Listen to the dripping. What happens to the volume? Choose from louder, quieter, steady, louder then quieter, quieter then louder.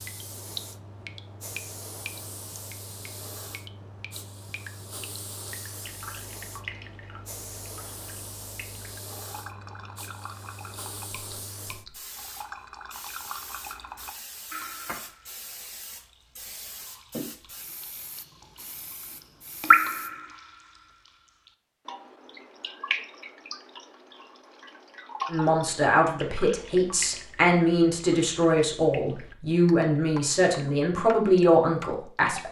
louder then quieter.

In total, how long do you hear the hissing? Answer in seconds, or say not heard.
20 s.